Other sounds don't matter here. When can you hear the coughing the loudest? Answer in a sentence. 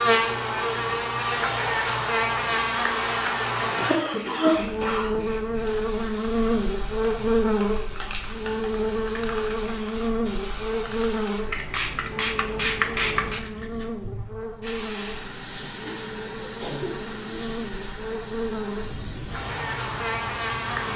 The volume of the coughing peaks at 4 seconds.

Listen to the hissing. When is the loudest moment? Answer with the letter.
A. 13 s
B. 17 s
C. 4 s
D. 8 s
A.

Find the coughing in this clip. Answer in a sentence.
The coughing can be heard from 3.8 to 5.2 s and from 15.8 to 17.4 s.